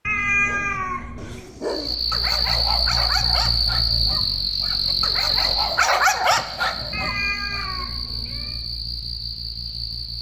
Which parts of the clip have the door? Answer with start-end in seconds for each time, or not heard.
not heard.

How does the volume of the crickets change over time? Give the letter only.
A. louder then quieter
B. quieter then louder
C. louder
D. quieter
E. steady
D.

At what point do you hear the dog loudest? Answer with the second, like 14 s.
6 s.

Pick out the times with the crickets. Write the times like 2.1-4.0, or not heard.
1.6-10.1.